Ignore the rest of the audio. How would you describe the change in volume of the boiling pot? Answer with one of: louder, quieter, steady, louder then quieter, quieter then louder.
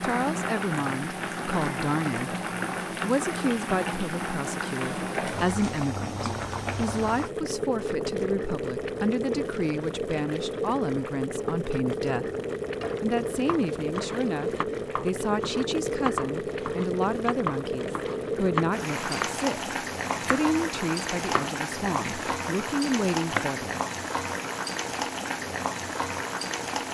steady.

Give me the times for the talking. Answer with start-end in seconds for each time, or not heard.
0.0-2.4, 3.0-12.3, 13.0-23.8.